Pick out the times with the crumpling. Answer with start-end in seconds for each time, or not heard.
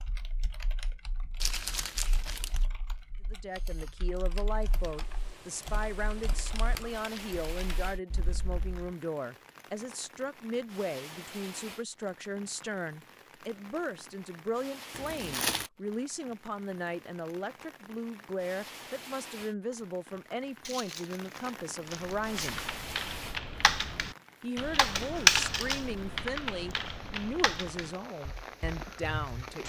1.4-2.6, 14.9-15.7, 20.6-22.6.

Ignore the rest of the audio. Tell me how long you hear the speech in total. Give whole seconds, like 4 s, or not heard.
25 s.